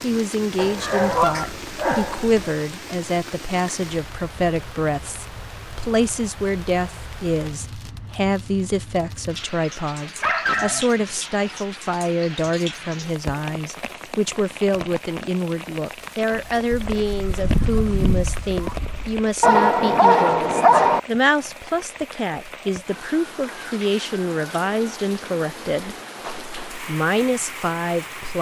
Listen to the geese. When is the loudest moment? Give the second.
1 s.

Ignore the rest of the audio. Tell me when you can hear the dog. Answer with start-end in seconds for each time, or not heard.
0.6-2.4, 10.2-11.6, 19.4-21.0.